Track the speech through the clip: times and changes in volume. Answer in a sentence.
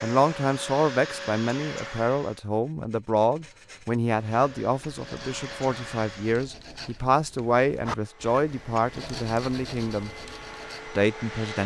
You can hear the speech from 0.0 to 10.1 s, at a steady volume; and briefly from 10.9 to 11.6 s.